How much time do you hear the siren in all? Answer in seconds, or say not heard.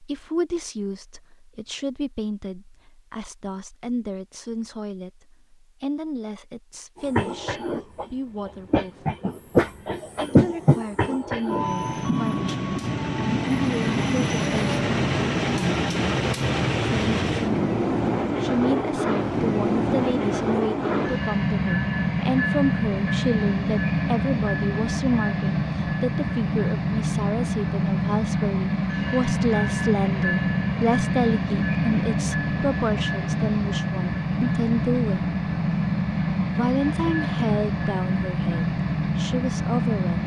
not heard.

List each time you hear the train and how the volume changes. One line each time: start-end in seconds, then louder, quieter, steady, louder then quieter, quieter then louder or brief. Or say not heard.
7.0-40.2 steady.